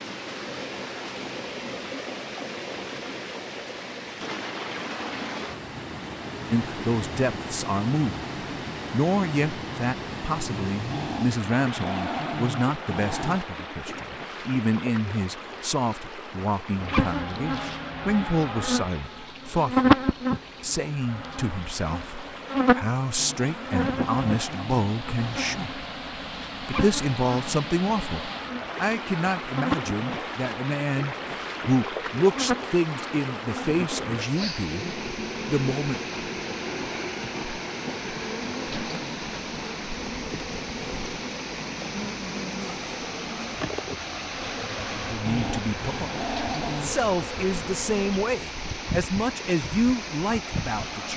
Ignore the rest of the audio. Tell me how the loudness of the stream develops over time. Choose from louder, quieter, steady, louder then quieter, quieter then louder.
steady.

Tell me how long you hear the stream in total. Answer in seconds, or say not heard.
51 s.